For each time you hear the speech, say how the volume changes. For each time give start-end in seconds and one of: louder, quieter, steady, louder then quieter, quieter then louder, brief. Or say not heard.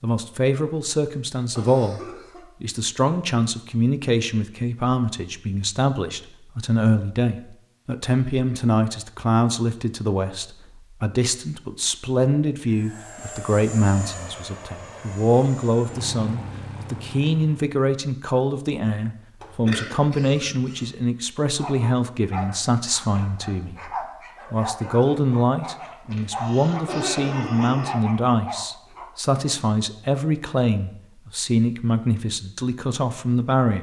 0.0-2.0 brief
2.6-33.7 steady.